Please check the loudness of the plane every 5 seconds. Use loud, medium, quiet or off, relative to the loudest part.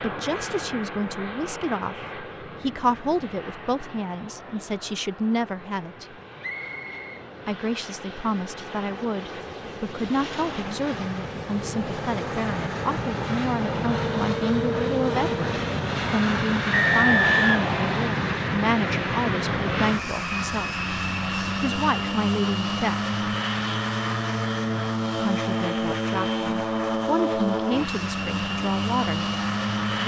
medium, quiet, loud, loud, loud, loud.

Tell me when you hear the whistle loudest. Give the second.
17 s.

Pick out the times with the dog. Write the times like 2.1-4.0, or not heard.
not heard.